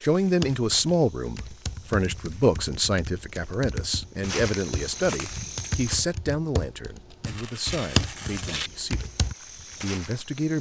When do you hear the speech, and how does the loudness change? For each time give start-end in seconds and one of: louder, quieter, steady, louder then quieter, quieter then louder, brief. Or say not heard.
0.0-9.1 quieter
9.8-10.5 brief.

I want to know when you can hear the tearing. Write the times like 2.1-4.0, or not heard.
7.2-8.7.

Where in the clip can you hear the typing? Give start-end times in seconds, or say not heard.
0.2-9.3.